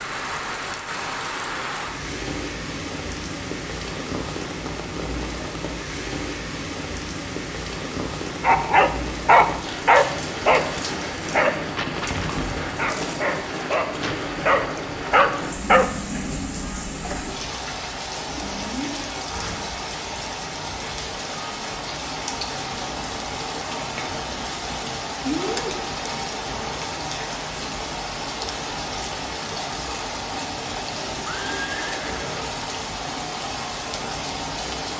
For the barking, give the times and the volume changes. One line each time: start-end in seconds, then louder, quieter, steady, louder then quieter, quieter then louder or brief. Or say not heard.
8.4-15.8 quieter then louder.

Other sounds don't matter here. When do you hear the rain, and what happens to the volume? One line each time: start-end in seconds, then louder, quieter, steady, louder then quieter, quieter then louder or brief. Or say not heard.
0.0-34.9 steady.